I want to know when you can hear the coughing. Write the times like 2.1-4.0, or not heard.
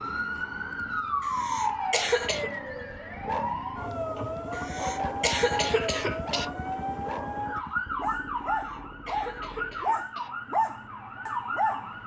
1.2-2.5, 4.5-6.5, 8.3-10.3.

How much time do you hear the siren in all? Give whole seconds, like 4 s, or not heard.
12 s.